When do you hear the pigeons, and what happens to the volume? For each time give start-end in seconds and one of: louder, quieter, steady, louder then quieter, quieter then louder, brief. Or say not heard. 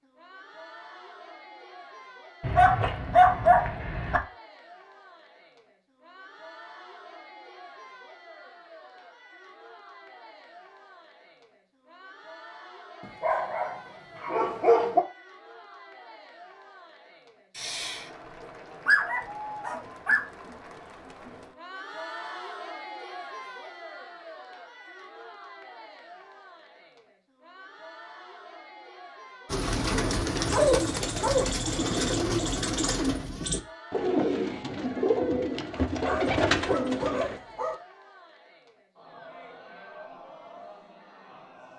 29.4-37.4 steady.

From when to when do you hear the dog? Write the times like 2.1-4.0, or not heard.
2.4-4.2, 13.2-15.0, 17.6-20.2, 30.5-31.5, 35.8-37.8.